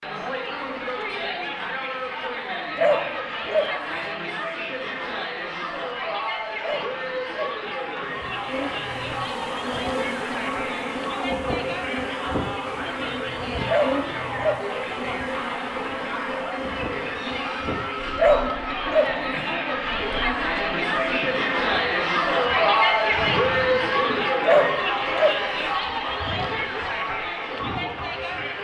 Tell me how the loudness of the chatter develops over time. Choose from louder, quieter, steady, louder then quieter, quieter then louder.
louder.